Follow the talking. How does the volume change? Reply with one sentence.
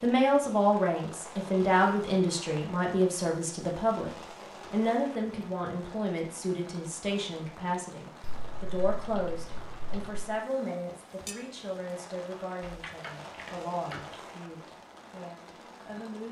The loudness of the talking goes down.